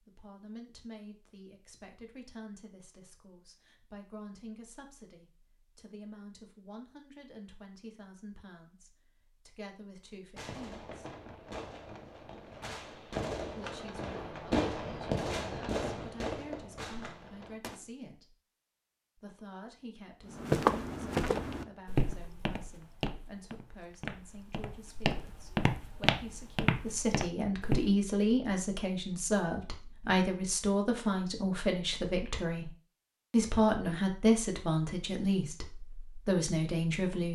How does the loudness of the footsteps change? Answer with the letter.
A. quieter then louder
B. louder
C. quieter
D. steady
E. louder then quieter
A.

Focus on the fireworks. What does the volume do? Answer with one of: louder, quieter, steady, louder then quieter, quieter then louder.
louder then quieter.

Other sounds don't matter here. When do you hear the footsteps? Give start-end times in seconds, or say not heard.
20.3-27.9.